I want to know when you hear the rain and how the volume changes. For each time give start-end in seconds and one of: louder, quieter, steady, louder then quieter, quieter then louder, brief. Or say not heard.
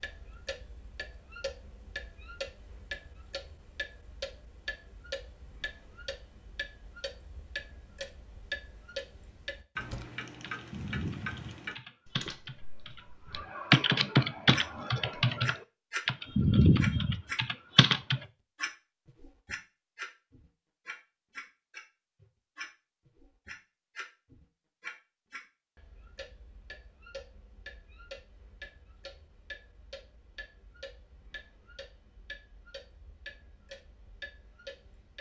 not heard.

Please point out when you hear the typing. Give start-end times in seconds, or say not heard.
9.8-18.2.